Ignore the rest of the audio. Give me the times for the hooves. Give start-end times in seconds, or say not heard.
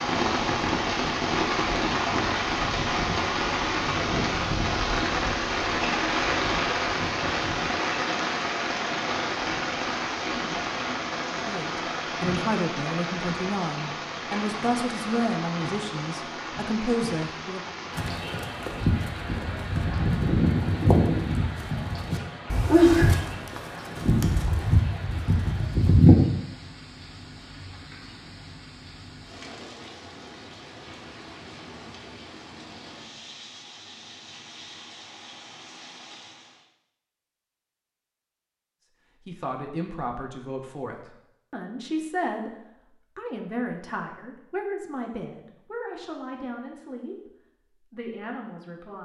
17.9-26.1.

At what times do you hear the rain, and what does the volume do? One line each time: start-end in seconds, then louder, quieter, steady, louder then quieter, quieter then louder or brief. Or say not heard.
0.0-36.6 quieter.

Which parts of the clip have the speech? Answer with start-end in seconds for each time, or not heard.
11.3-17.8, 39.2-49.0.